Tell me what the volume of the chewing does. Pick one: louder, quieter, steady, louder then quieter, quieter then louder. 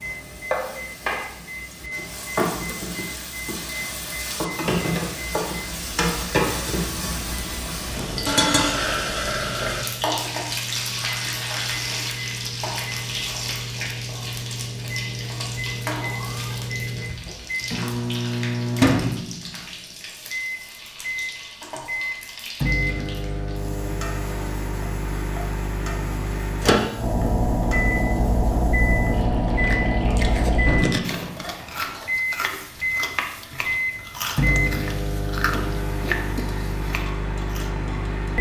steady.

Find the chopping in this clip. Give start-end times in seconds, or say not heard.
not heard.